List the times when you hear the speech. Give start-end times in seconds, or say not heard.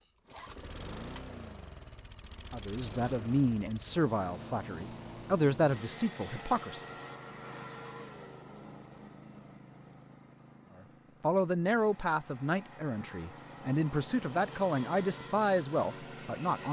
2.5-6.8, 11.2-16.6.